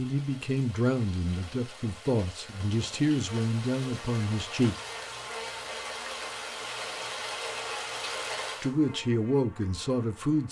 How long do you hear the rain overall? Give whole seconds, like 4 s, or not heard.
9 s.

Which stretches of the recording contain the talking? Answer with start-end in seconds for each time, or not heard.
0.0-4.8, 8.6-10.4.